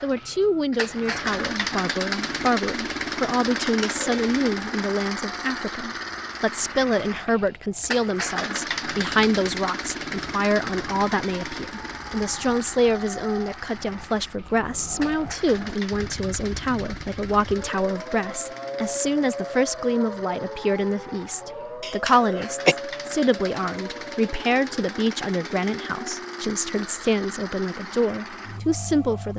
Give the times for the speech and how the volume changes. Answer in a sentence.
You can hear the speech from 0.0 to 29.3 s, at a steady volume.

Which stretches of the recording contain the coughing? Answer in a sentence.
You can hear the coughing from 3.6 to 4.1 s and from 21.8 to 22.8 s.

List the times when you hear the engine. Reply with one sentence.
The engine can be heard from 0.0 to 29.3 s.